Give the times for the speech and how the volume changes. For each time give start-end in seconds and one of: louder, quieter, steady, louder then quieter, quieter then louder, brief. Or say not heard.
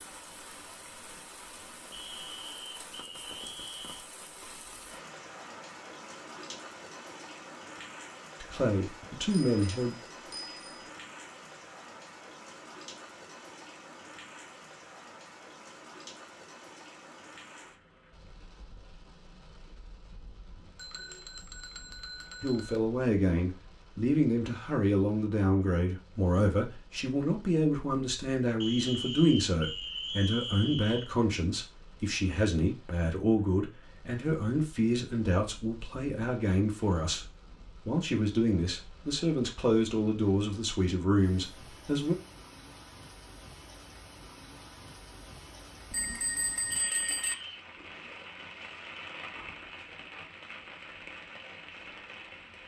8.4-9.9 brief
22.4-42.1 steady.